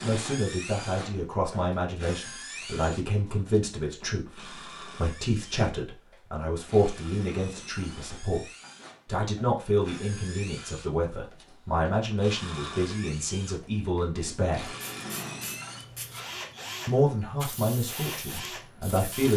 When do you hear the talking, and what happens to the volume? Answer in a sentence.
The talking can be heard from 0.0 to 14.8 s, at a steady volume; and briefly from 16.9 to 19.3 s.